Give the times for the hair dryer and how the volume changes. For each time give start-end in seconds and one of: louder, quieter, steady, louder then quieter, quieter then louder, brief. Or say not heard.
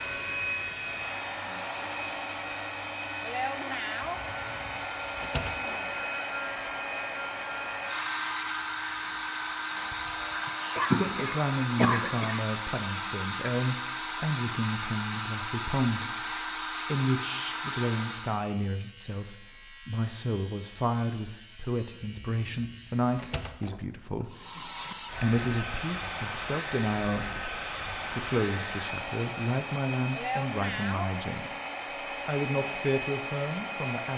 0.0-18.4 steady
24.2-34.1 steady.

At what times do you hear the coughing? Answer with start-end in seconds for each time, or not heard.
10.4-12.4.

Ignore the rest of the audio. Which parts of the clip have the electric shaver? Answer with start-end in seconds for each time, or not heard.
0.0-23.6.